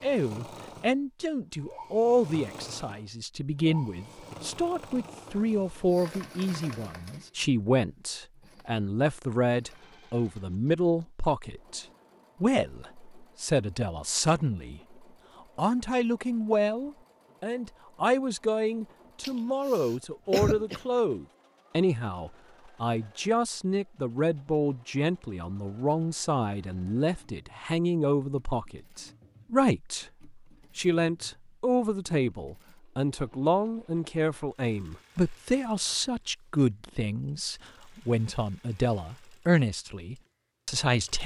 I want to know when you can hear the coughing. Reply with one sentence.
You can hear the coughing from 19.2 to 20.8 s.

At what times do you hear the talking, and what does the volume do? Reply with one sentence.
The talking can be heard from 0.0 to 14.8 s, at a steady volume; and from 15.6 to 41.2 s, at a steady volume.